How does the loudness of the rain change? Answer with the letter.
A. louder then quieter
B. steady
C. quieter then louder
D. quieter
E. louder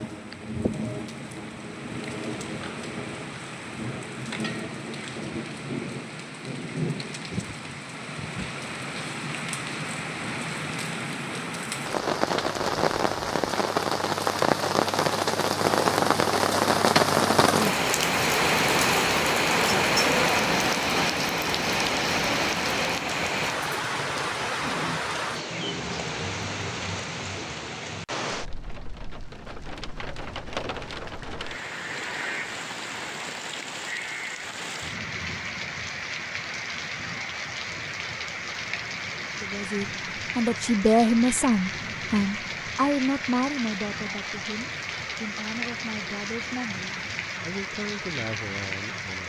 A.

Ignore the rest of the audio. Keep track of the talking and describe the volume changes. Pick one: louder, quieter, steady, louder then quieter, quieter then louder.
quieter.